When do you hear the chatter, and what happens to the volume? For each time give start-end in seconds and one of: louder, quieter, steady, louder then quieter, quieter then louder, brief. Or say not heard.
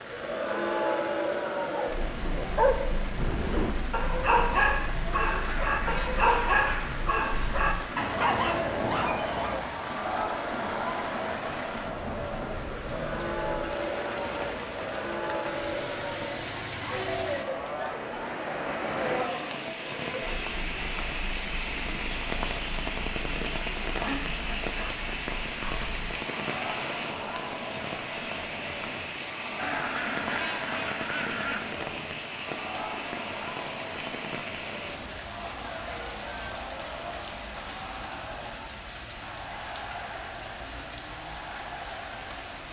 0.0-42.6 quieter.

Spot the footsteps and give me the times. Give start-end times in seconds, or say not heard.
not heard.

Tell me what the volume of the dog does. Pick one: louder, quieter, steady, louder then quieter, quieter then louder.
steady.